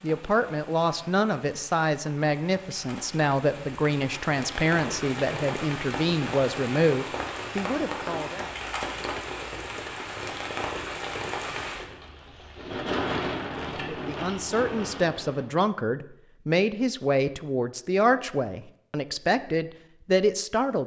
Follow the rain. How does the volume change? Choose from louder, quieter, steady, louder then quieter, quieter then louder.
louder.